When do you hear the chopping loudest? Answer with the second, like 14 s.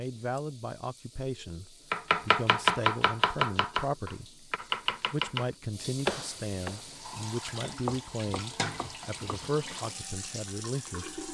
3 s.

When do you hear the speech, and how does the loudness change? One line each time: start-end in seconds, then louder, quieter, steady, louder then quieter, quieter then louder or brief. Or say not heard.
0.0-11.2 steady.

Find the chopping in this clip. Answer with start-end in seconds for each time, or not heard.
1.9-9.5.